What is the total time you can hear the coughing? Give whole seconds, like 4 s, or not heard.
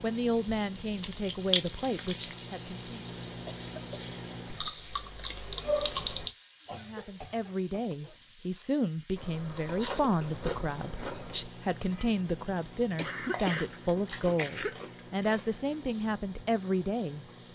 4 s.